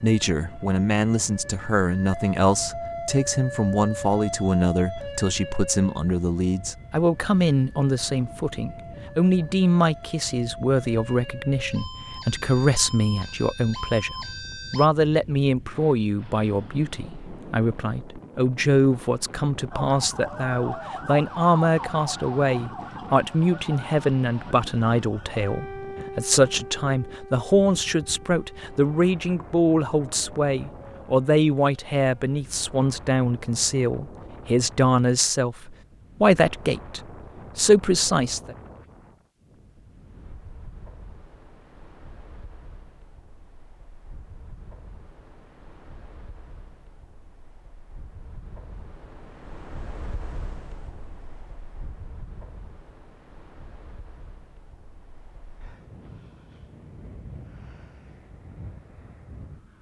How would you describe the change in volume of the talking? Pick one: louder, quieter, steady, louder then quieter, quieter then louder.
steady.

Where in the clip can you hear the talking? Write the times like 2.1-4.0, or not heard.
0.0-38.5.